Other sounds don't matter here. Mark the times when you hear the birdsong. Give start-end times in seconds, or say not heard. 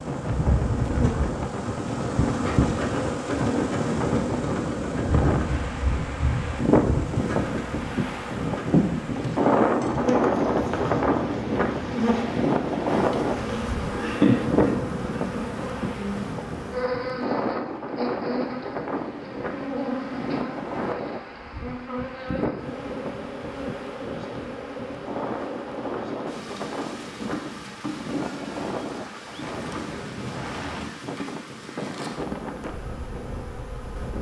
not heard.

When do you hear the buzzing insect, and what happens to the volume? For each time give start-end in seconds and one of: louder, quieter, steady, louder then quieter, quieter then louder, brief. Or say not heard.
0.0-34.1 quieter.